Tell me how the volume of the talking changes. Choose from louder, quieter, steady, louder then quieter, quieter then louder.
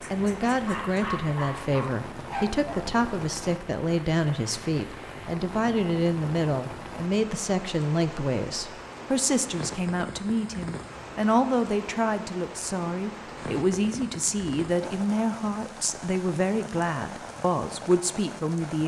steady.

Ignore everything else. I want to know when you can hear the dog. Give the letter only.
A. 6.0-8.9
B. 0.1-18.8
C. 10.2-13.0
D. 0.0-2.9
D.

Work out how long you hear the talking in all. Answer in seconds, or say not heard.
19 s.